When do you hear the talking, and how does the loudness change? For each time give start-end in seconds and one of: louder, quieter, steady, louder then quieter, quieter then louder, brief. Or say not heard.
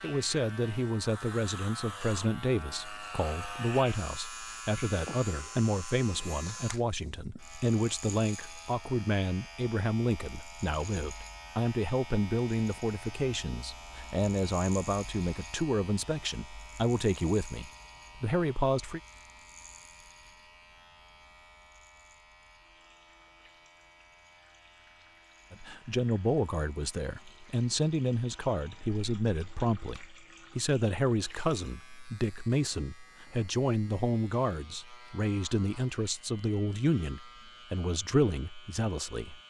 0.0-19.0 steady
25.5-39.4 steady.